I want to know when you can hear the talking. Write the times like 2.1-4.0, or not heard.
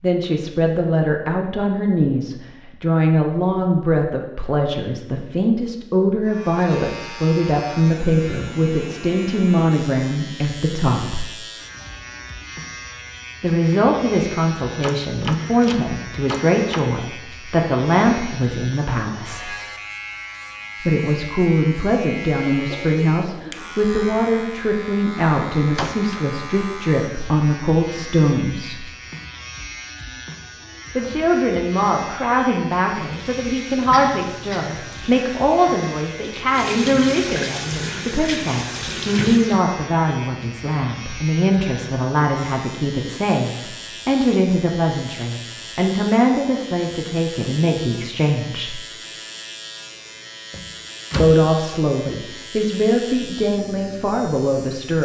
0.0-11.2, 13.4-19.5, 20.8-28.9, 30.9-48.8, 51.2-55.0.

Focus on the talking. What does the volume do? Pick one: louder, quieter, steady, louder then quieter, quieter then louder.
steady.